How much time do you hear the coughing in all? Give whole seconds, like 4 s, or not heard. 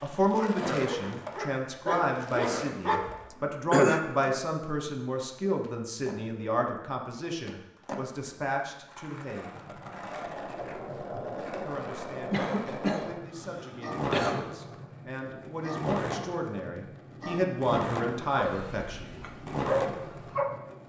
3 s.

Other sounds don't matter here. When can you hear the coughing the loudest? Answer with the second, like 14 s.
4 s.